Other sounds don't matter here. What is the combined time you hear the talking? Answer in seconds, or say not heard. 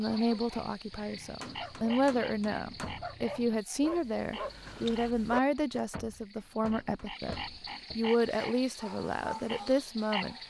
10 s.